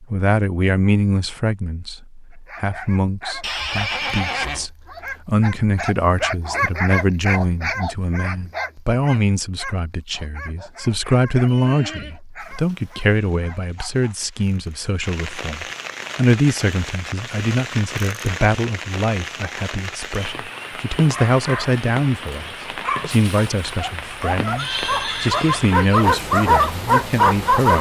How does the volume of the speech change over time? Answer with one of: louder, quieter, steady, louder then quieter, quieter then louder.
steady.